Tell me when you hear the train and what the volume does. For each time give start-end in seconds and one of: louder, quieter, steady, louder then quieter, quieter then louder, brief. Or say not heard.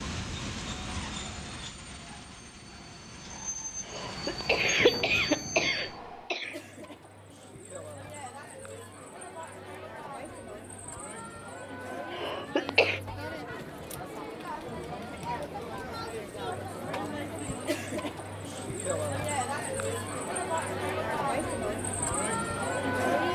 0.0-6.3 quieter then louder.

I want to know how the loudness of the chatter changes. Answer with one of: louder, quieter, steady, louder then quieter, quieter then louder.
louder.